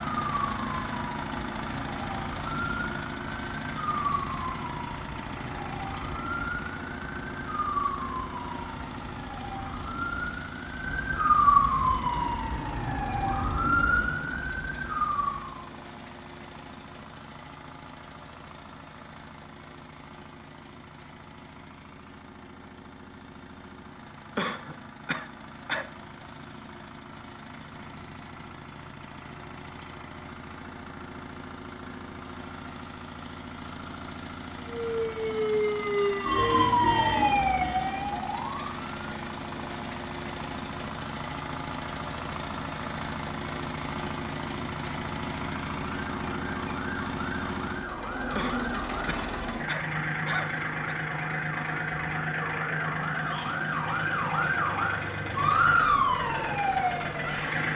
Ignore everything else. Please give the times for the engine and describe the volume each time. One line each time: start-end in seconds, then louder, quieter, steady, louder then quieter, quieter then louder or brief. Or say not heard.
0.0-57.7 quieter then louder.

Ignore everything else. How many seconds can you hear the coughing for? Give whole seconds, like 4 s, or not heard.
4 s.